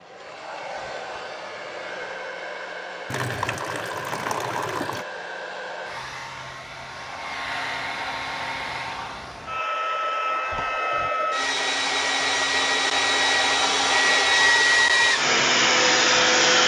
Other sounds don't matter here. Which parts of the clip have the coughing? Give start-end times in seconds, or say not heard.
not heard.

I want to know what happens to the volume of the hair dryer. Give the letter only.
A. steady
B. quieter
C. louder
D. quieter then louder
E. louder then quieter
C.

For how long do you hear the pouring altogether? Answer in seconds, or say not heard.
2 s.